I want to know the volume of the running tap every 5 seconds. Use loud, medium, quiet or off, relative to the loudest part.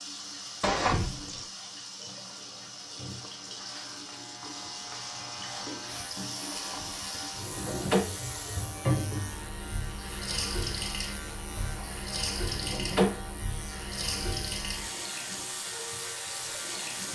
medium, loud, loud, loud.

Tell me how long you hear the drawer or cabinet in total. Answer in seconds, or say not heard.
4 s.